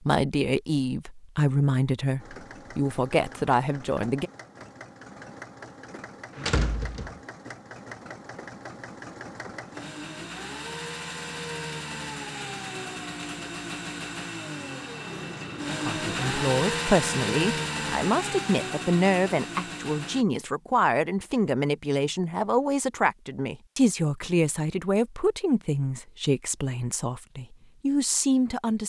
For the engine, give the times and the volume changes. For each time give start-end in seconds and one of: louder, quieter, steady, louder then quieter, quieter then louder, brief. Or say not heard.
2.1-20.2 louder.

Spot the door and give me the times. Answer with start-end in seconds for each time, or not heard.
6.3-7.2.